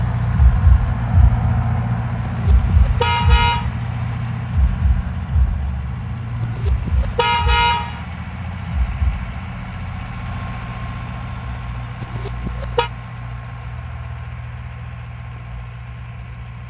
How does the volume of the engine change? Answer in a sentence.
The loudness of the engine goes down.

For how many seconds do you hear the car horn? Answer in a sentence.
The car horn can be heard for 4 seconds in total.